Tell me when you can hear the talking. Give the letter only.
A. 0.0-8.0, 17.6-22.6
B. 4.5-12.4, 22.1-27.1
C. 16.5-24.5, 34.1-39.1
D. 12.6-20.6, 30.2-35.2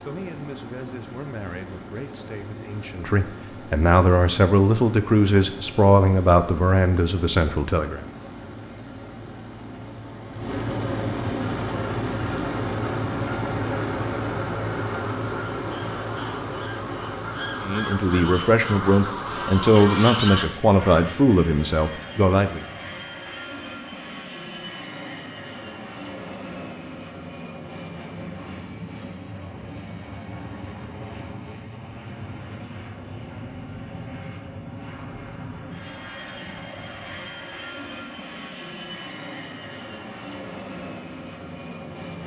A.